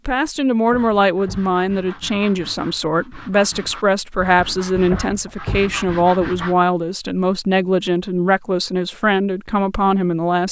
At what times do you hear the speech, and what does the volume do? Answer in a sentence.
You can hear the speech from 0.1 to 10.4 s, at a steady volume.